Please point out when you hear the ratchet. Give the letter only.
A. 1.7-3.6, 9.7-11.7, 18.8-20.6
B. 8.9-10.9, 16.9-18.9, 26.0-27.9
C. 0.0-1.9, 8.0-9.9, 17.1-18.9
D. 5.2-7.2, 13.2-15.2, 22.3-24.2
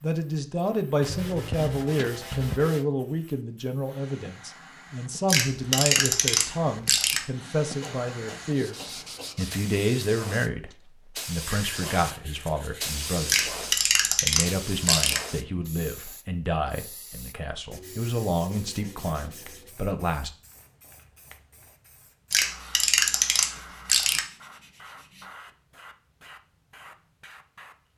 D.